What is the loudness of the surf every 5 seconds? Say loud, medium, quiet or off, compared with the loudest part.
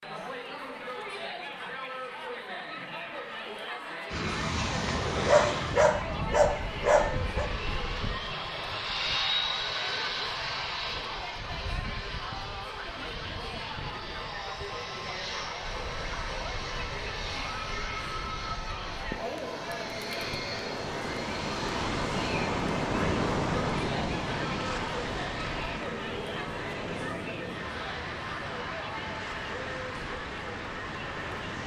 off, off, off, quiet, loud, medium, medium.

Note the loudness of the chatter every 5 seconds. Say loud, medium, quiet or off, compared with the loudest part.
loud, loud, loud, loud, loud, loud, medium.